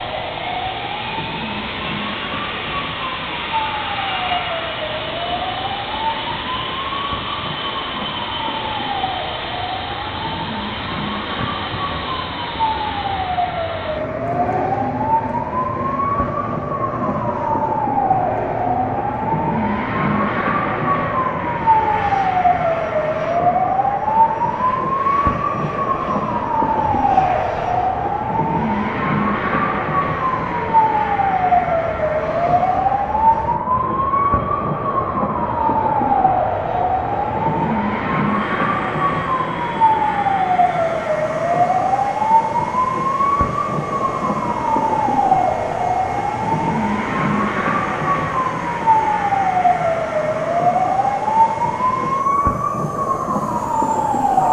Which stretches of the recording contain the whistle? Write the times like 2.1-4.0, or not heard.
not heard.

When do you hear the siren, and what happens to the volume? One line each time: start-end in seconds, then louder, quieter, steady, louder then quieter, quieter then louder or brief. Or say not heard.
0.0-54.4 louder.